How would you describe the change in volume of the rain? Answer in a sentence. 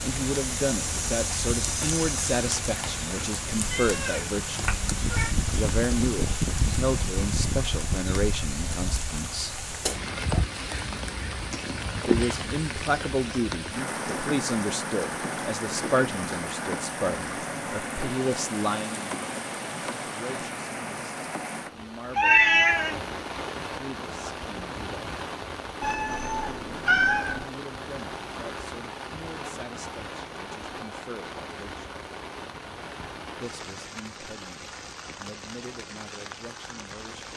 The volume of the rain goes down.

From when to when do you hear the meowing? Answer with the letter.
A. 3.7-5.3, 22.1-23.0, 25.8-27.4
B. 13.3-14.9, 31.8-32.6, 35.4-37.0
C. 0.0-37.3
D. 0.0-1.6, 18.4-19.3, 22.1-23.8
A.